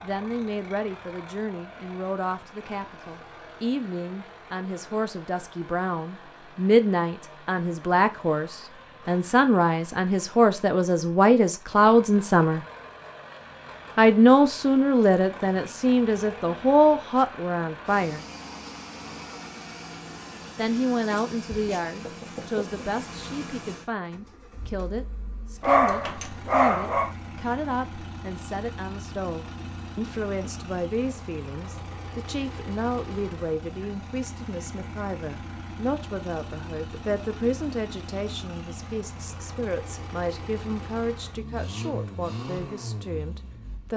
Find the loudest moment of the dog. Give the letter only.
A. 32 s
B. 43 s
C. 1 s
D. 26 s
D.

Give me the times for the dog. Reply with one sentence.
You can hear the dog from 25.6 to 27.1 s.